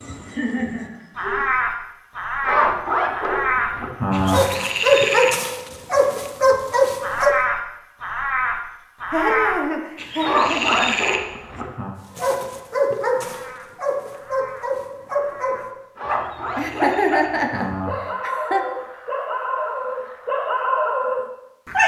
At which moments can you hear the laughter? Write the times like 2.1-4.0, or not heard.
0.2-1.4, 9.1-11.0, 16.6-18.6.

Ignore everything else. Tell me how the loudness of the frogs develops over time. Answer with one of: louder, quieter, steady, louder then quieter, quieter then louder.
quieter.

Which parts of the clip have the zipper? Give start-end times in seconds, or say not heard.
2.4-4.4, 10.2-11.9, 15.9-17.9.